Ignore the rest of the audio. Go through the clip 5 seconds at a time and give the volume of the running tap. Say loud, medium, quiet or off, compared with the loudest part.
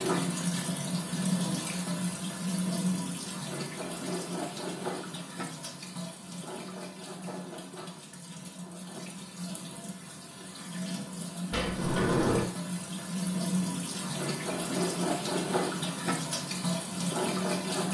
loud, medium, loud, loud.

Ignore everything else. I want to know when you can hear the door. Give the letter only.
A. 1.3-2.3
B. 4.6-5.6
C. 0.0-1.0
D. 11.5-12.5
D.